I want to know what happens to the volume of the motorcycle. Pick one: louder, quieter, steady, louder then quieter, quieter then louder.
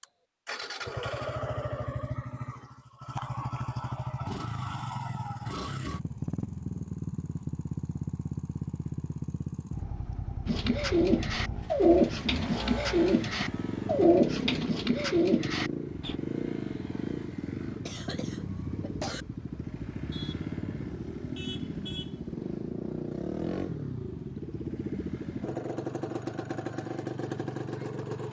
steady.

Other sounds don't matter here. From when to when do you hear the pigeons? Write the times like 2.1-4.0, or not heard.
10.4-16.1.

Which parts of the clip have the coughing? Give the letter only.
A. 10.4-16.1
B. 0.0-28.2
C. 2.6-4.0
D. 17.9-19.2
D.